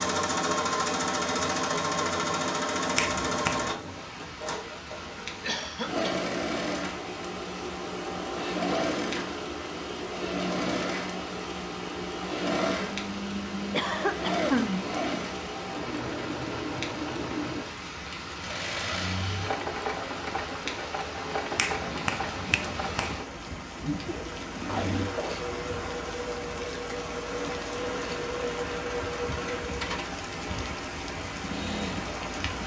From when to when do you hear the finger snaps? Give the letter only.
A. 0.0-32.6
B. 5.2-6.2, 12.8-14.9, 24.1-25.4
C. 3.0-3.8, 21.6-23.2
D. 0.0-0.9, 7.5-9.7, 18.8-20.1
C.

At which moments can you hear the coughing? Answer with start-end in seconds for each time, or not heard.
5.2-6.2, 12.8-14.9, 24.1-25.4.